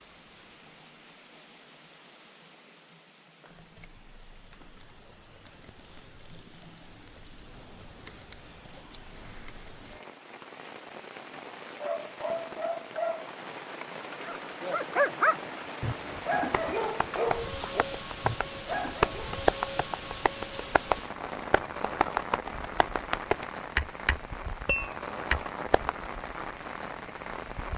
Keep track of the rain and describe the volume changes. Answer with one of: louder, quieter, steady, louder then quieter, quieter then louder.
louder.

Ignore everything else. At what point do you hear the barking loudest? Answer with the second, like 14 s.
15 s.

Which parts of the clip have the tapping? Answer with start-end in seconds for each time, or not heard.
16.4-25.9.